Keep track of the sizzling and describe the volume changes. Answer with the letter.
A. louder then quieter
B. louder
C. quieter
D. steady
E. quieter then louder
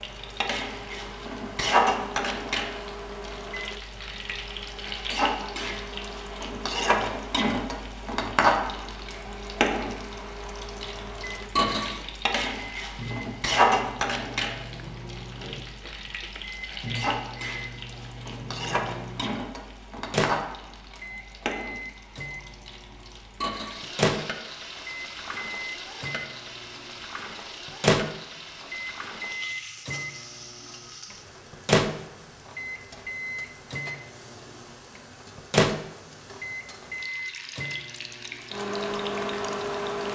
C.